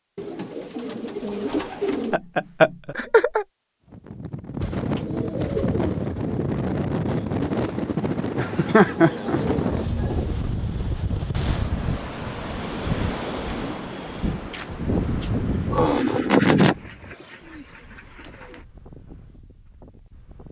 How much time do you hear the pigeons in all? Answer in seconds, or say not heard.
10 s.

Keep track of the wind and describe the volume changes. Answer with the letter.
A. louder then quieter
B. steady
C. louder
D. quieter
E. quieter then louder
D.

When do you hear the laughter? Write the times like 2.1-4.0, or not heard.
2.1-3.5, 8.3-9.4, 15.7-16.8.